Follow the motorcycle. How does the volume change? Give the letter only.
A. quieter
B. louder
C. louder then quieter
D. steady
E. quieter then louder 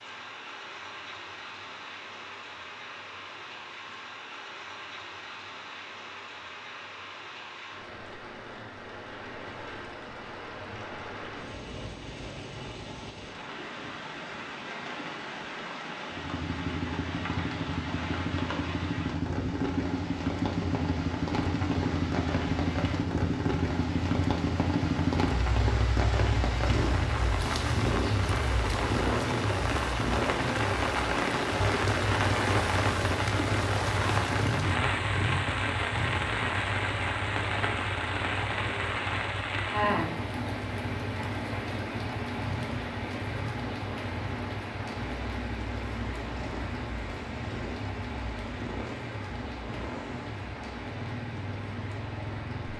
A.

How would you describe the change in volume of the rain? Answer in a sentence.
The loudness of the rain goes up, then down.